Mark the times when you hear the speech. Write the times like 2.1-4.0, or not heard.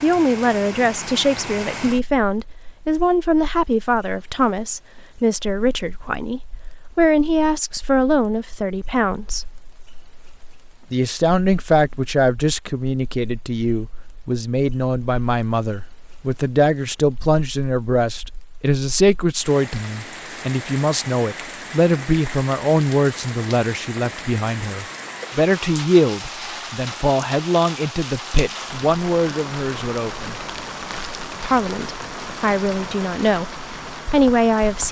0.0-9.6, 10.9-30.4, 31.4-34.8.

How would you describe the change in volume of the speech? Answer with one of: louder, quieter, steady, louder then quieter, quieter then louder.
steady.